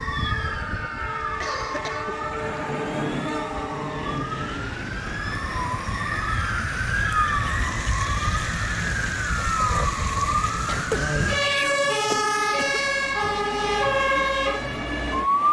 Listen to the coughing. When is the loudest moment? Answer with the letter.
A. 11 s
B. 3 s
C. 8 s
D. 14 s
A.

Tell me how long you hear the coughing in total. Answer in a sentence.
The coughing can be heard for 3 seconds in total.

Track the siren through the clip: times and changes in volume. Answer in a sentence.
You can hear the siren from 0.0 to 15.4 s, getting louder.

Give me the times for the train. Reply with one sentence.
You can hear the train from 0.0 to 15.4 s.